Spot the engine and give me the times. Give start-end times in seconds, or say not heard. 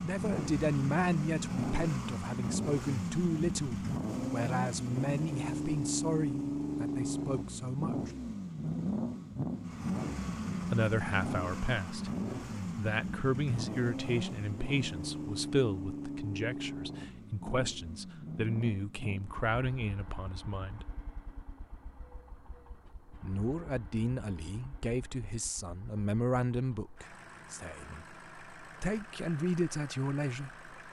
0.0-30.8.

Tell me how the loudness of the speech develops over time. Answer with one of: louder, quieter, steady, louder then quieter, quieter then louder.
steady.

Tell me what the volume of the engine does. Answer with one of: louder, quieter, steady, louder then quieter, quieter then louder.
quieter.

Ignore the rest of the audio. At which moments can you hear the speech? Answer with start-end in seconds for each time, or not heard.
0.0-8.1, 10.6-20.9, 23.1-30.6.